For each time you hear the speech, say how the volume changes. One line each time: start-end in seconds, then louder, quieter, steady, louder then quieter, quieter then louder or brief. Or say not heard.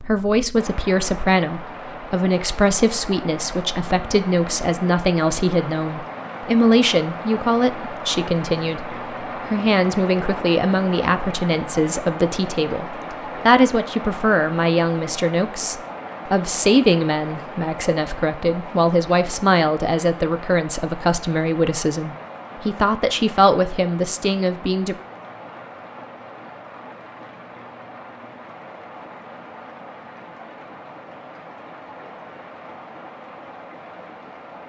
0.0-24.9 steady.